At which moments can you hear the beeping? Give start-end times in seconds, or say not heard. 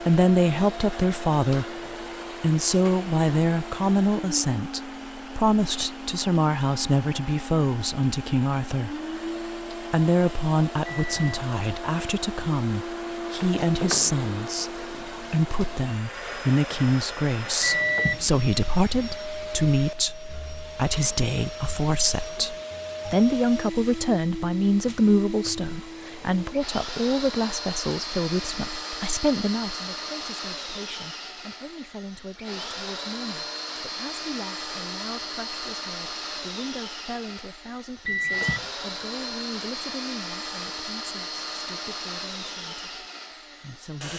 10.9-11.4, 17.6-18.3, 38.0-38.6.